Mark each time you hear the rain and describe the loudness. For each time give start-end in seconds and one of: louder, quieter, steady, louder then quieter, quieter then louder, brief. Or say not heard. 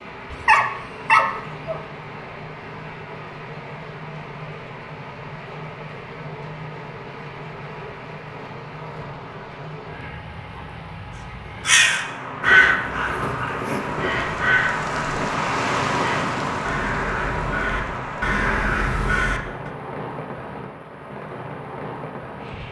0.0-22.6 louder then quieter.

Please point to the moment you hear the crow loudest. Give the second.
13 s.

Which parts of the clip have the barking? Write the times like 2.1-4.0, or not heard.
0.3-1.8.